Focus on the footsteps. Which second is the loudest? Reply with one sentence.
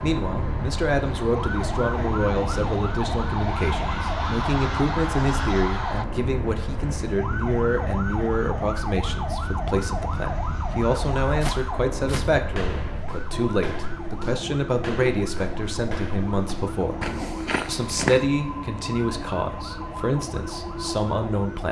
The loudest moment of the footsteps is at 18 seconds.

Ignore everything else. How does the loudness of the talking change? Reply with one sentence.
The volume of the talking stays about the same.